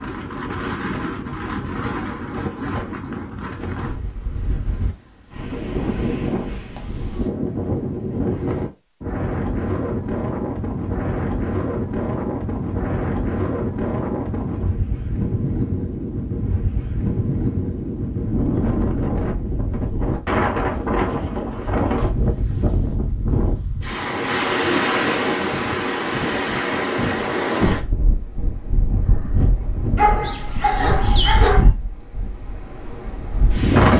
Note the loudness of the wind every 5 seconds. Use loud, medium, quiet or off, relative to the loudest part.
medium, loud, loud, loud, loud, loud, loud.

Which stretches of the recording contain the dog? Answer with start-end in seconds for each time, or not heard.
29.9-31.7.